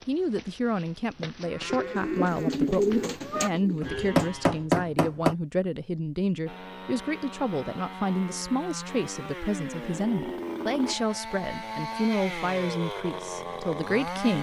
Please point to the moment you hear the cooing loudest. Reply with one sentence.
The volume of the cooing peaks at 3 seconds.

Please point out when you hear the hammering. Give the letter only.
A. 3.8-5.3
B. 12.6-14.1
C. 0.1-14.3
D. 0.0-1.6
A.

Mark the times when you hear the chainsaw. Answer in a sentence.
You can hear the chainsaw from 6.5 to 14.3 s.